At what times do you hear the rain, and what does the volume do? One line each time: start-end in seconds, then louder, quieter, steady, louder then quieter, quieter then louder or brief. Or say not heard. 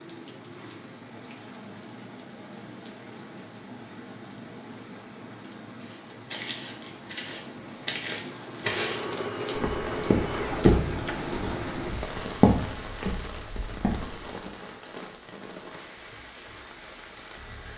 0.0-17.7 louder then quieter.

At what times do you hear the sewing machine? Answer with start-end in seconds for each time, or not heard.
8.6-11.0.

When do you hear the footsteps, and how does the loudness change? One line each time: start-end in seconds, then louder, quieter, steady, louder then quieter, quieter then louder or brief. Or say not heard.
5.8-14.5 louder then quieter.